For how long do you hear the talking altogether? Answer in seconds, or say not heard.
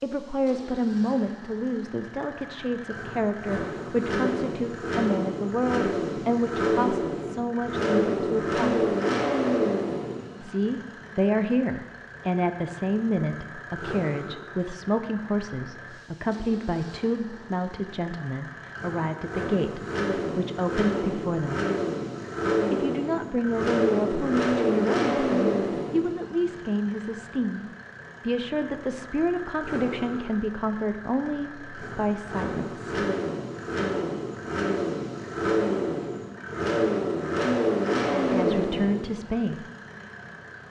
32 s.